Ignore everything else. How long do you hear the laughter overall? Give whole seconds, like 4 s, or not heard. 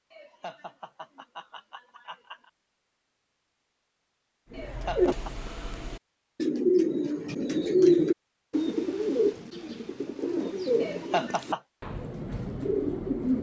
4 s.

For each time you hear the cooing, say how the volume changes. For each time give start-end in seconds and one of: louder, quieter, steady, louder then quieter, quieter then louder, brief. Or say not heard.
4.5-13.3 louder then quieter.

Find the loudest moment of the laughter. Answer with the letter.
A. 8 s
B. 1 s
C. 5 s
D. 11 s
D.